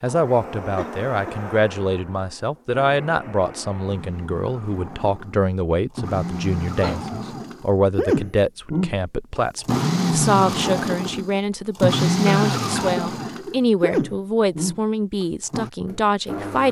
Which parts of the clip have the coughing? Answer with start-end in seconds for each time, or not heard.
0.8-1.4, 6.3-7.1, 12.2-13.6.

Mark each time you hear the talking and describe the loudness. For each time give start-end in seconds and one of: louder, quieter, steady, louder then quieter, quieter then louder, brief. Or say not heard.
0.0-16.6 steady.